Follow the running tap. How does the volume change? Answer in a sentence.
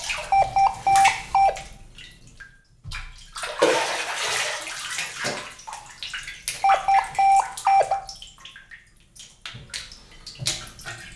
The volume of the running tap goes up, then down.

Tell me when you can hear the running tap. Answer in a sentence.
You can hear the running tap from 0.0 to 11.1 s.